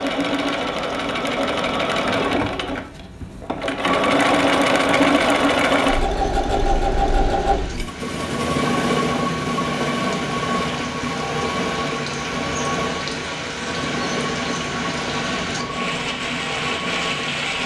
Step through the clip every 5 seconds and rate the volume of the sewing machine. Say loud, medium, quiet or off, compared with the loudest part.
loud, loud, medium, medium.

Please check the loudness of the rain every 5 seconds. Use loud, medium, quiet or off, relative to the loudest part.
off, medium, loud, loud.